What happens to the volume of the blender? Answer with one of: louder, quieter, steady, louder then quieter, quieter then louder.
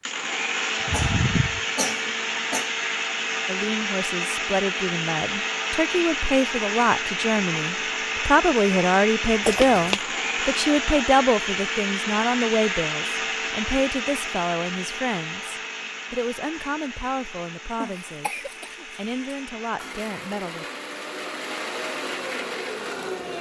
quieter.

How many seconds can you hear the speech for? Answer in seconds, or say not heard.
17 s.